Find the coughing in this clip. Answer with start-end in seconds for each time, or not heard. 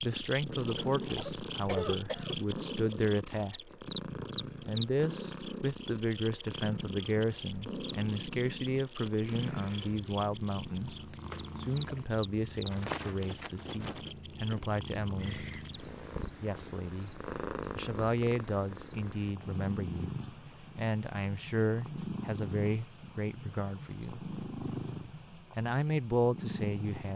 1.0-2.5.